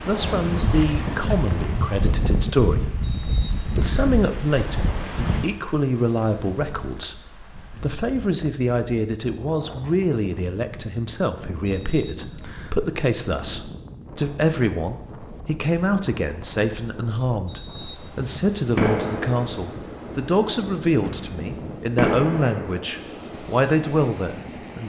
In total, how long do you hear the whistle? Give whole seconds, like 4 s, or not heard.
3 s.